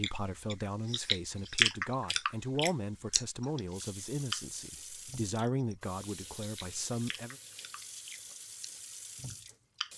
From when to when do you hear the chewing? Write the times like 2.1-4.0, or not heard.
0.0-4.6, 5.3-5.8, 6.4-9.9.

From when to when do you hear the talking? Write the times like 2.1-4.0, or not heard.
0.0-7.3.